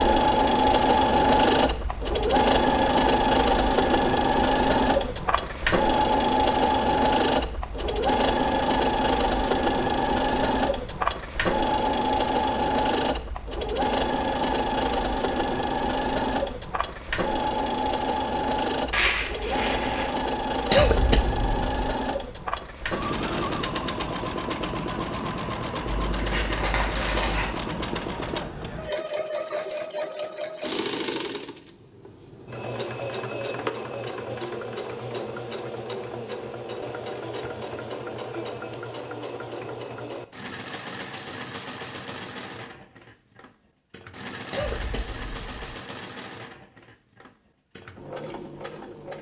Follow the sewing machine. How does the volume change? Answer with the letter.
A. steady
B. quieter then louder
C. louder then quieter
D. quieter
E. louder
D.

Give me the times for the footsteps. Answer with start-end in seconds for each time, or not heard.
not heard.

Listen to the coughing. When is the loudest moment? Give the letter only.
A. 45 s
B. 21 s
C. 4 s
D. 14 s
B.